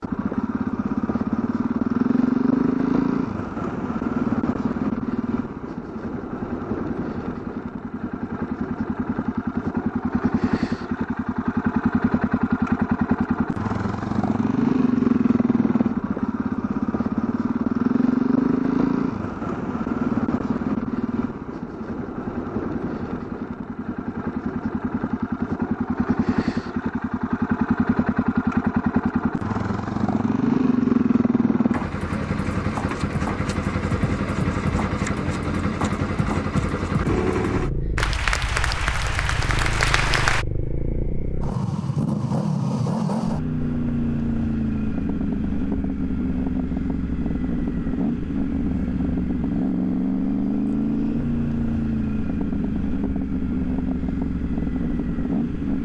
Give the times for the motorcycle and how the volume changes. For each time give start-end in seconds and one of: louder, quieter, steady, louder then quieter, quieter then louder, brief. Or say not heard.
0.0-55.8 steady.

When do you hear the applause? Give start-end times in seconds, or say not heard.
38.0-40.5.